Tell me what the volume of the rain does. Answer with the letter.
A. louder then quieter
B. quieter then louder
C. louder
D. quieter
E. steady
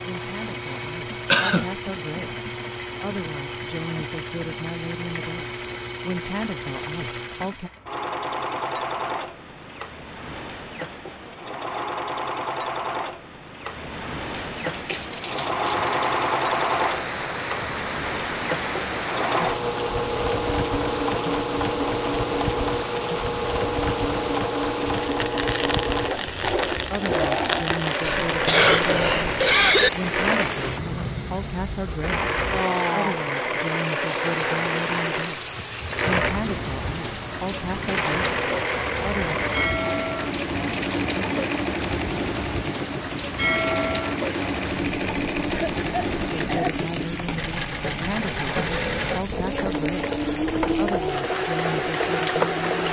E.